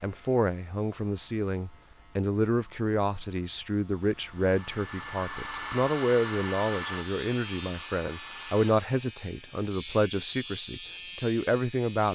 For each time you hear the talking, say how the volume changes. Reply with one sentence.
The talking can be heard from 0.0 to 12.0 s, at a steady volume.